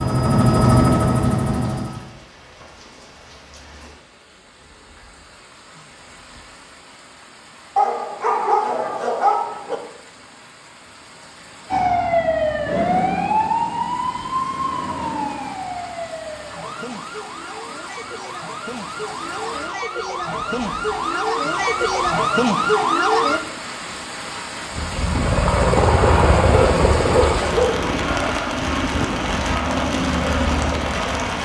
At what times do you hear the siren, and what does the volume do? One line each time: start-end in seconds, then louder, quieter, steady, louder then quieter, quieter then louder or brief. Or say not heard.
11.7-23.4 quieter then louder.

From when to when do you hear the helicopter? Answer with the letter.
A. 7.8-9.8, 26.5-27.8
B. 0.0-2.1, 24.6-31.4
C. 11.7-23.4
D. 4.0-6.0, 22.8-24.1
B.